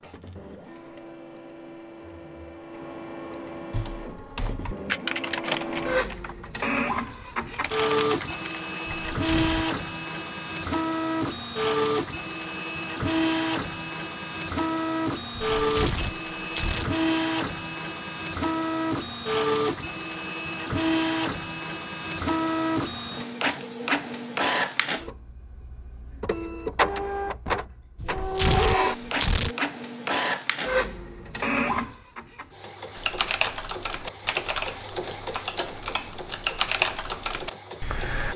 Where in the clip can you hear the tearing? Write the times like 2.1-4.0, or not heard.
9.1-9.7, 15.6-16.9, 27.9-29.6.